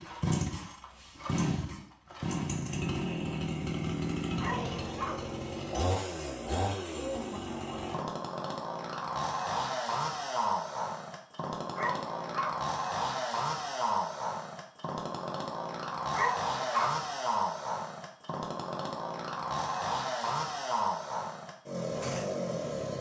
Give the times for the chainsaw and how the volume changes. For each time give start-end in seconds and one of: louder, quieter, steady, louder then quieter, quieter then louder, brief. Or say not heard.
0.0-22.9 steady.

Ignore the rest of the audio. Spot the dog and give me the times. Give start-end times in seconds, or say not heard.
4.4-5.2, 11.8-12.6, 16.1-17.0.